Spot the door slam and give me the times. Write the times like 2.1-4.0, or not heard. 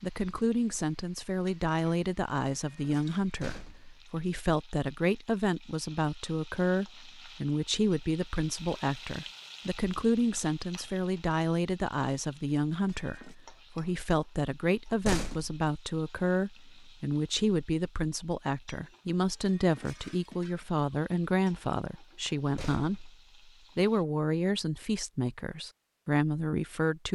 3.2-4.0, 14.8-15.6, 22.4-23.1.